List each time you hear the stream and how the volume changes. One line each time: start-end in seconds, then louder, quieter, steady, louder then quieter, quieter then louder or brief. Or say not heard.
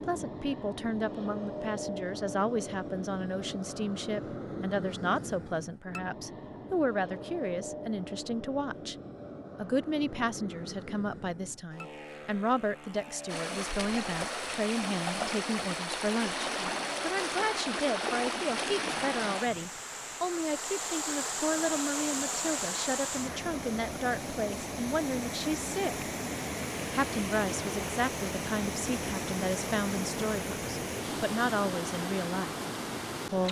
13.2-33.4 steady.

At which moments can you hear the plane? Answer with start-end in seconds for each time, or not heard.
0.0-23.4.